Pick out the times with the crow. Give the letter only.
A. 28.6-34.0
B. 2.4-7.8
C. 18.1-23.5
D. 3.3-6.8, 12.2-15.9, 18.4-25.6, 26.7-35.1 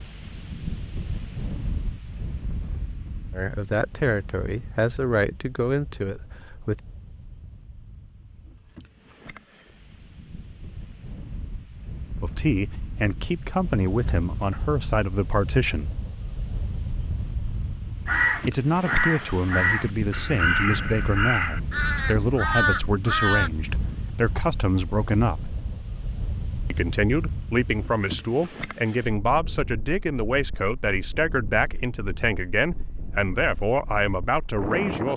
C.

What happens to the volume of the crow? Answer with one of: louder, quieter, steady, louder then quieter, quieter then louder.
steady.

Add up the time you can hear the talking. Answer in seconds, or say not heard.
23 s.